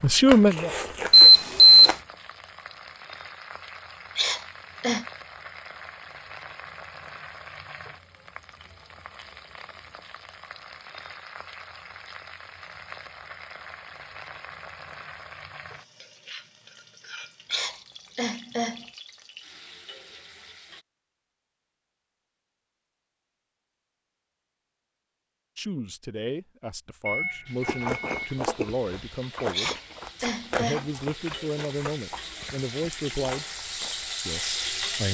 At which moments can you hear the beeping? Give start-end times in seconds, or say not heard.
1.1-1.9, 27.1-28.4.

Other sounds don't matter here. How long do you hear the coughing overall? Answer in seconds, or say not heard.
4 s.